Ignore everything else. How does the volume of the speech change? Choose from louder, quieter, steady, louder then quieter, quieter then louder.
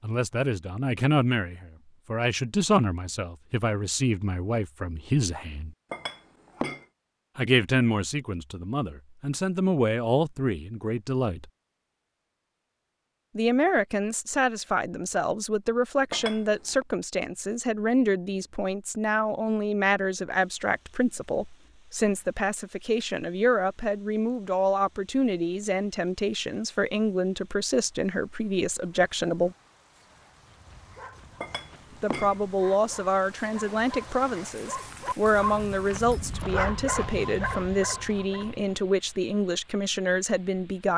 steady.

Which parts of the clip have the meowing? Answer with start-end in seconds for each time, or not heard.
not heard.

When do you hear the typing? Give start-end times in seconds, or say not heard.
not heard.